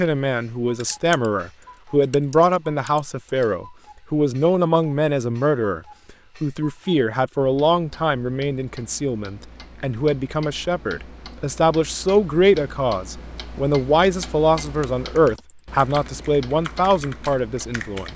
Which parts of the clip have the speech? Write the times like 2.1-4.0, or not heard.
0.0-5.8, 6.4-18.1.